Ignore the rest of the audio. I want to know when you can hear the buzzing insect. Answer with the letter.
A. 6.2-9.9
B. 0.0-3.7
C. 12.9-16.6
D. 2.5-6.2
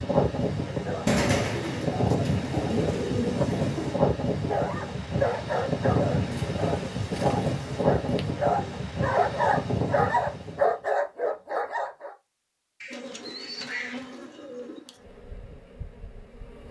C.